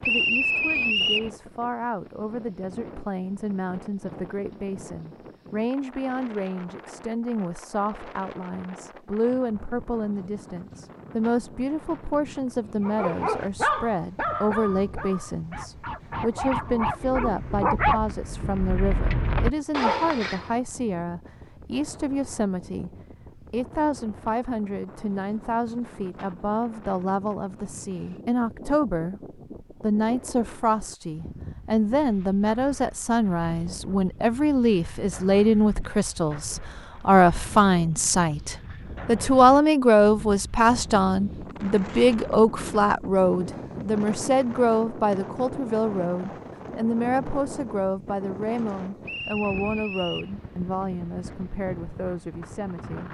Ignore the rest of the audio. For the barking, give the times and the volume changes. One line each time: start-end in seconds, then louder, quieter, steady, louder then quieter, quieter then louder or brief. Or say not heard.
12.8-20.5 quieter then louder.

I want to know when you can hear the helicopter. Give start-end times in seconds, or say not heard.
not heard.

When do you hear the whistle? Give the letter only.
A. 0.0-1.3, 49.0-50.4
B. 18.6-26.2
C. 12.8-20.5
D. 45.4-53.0
A.